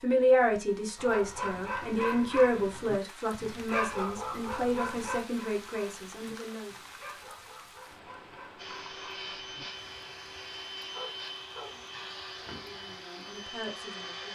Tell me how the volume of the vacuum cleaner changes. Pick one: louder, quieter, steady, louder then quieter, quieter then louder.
steady.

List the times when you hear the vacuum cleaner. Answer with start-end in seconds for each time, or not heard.
8.6-14.3.